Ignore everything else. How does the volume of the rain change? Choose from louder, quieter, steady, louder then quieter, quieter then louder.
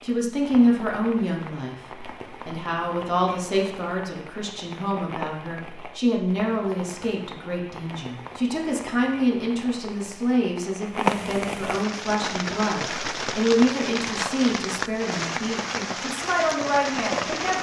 louder.